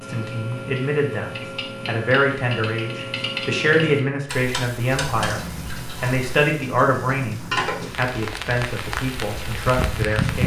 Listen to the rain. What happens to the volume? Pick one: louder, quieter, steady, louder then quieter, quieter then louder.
louder.